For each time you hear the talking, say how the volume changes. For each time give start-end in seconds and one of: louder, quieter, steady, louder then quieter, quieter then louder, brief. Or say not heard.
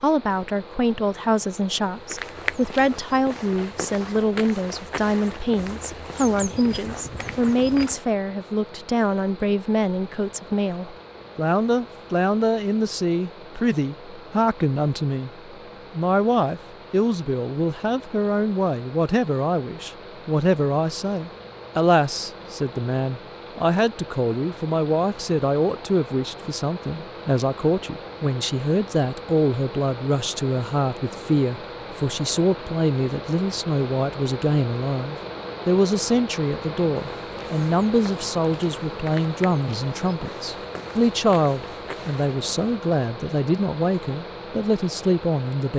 0.0-45.7 steady.